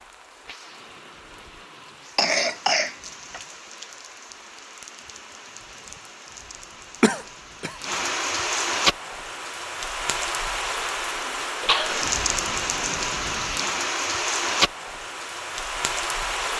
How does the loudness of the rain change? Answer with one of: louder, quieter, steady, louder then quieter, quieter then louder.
louder.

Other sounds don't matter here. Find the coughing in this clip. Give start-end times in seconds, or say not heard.
2.1-3.4, 7.0-7.8, 11.6-12.1.